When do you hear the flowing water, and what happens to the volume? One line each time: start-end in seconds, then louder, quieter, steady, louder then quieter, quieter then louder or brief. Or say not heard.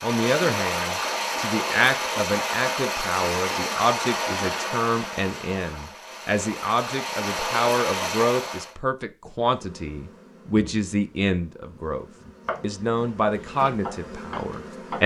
0.0-8.8 quieter then louder.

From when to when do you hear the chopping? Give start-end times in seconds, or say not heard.
12.2-15.0.